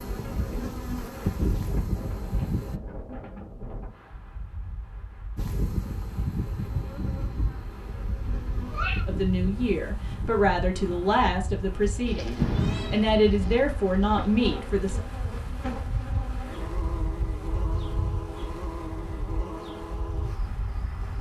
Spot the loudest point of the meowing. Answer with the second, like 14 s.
13 s.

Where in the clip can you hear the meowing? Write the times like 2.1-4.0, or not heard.
8.2-9.1, 12.4-13.0.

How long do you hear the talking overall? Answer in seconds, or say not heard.
6 s.